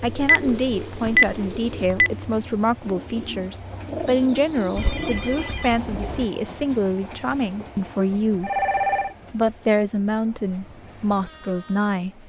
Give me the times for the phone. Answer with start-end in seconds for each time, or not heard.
0.1-2.1, 4.8-6.2, 8.4-9.2.